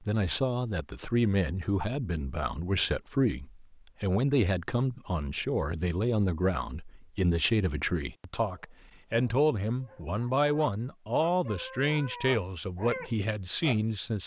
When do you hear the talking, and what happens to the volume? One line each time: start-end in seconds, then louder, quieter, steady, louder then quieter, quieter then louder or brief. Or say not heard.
0.0-14.2 steady.